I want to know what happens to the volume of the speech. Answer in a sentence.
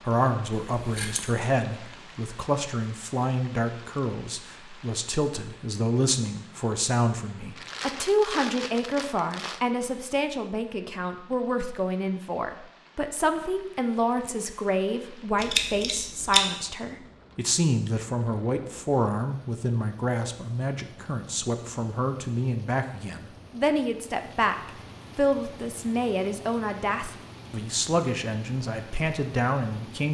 The volume of the speech stays about the same.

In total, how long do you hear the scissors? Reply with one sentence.
You can hear the scissors for 2 seconds altogether.